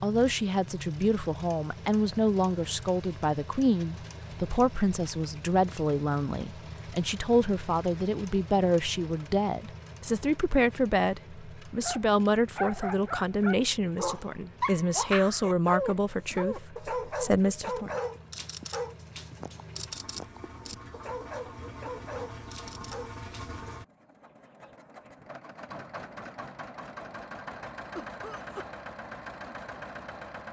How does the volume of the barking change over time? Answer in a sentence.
The volume of the barking goes down.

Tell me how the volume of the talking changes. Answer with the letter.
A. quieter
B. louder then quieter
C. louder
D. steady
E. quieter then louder
D.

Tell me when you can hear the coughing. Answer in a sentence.
You can hear the coughing from 27.9 to 28.6 s.